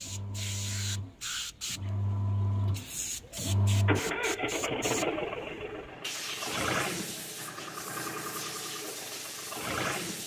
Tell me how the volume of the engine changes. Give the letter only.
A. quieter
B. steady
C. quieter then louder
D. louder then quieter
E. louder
D.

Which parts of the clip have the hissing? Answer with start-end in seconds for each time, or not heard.
0.0-10.2.